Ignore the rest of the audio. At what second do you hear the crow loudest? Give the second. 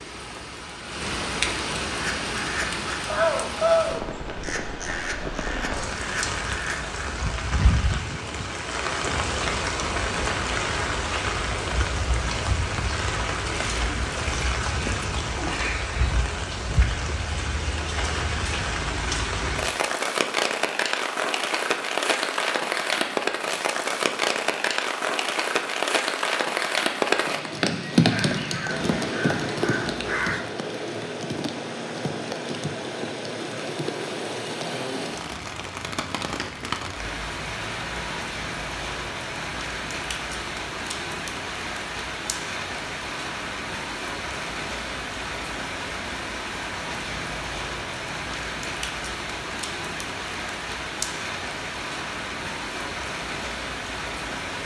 4 s.